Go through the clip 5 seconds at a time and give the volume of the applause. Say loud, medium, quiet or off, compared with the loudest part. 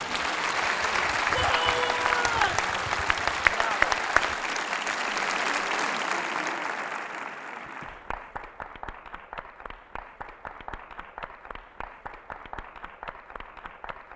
loud, medium, quiet.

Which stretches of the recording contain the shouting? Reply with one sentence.
The shouting can be heard from 1.4 to 2.7 s.